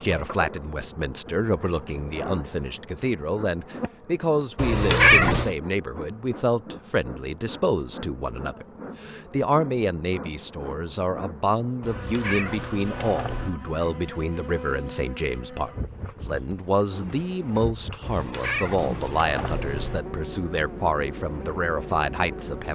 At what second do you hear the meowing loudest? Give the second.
5 s.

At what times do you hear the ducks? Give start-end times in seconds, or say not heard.
not heard.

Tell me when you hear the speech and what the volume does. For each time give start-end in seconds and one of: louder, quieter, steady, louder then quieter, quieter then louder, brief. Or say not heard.
0.0-22.7 steady.